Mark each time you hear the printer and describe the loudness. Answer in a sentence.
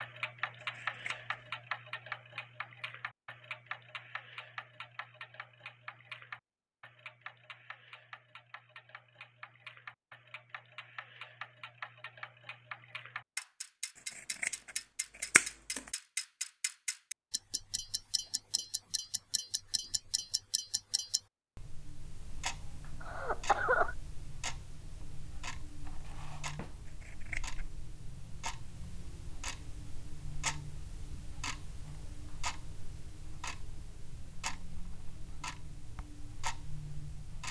The printer can't be heard in this clip.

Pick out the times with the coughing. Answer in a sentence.
The coughing can be heard from 23.0 to 23.9 s.